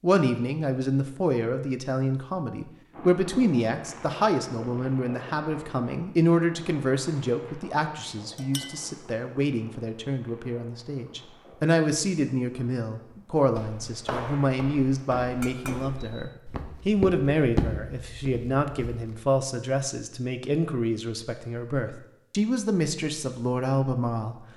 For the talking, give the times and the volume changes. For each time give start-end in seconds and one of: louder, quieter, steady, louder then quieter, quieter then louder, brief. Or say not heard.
0.0-24.4 steady.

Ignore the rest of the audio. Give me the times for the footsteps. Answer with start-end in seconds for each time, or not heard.
13.4-19.2.